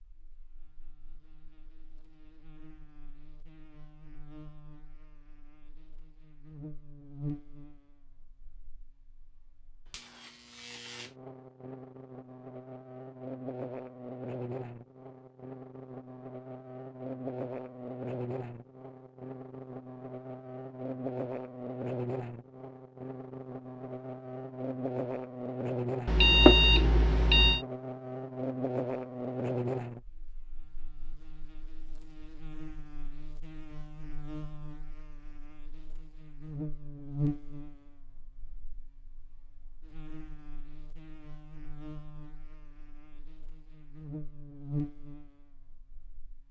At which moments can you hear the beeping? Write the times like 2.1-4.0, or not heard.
26.1-27.6.